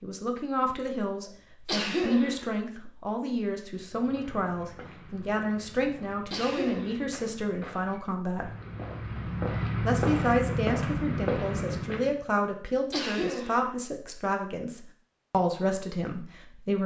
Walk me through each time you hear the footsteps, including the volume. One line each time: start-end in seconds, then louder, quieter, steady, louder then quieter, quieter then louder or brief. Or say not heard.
3.8-12.2 louder.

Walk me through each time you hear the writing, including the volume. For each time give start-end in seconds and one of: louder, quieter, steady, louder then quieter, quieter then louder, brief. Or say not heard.
not heard.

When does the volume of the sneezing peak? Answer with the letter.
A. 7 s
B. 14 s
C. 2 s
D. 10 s
C.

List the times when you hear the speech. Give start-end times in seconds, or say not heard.
0.0-8.5, 9.8-16.8.